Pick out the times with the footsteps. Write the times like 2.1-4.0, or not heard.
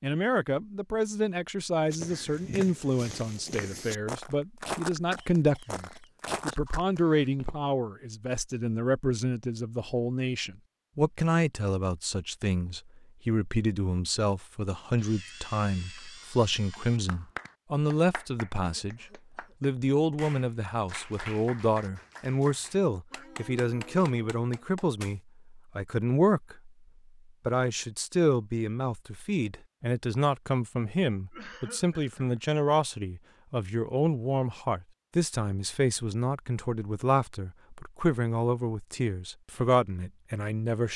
1.9-7.5.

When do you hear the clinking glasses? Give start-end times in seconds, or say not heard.
not heard.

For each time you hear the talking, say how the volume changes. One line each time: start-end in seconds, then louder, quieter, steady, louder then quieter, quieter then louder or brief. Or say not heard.
0.0-26.7 steady
27.4-40.9 steady.